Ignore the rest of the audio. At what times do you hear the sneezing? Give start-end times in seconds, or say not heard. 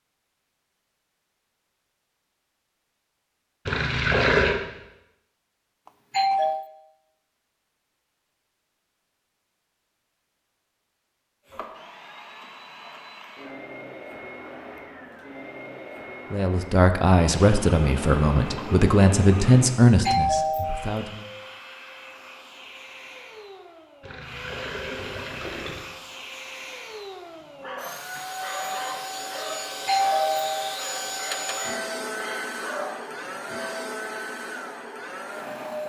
not heard.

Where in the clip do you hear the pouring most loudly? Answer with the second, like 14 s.
4 s.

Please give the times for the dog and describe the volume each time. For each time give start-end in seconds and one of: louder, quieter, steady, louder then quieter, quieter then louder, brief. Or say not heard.
27.4-33.9 steady.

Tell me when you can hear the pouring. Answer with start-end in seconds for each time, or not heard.
3.6-4.5, 17.3-19.8, 24.0-25.9.